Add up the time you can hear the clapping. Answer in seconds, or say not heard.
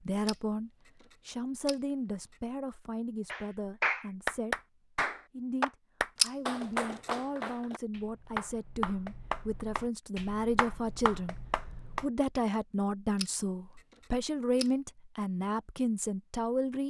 9 s.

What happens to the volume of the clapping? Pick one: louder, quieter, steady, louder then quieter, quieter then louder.
quieter.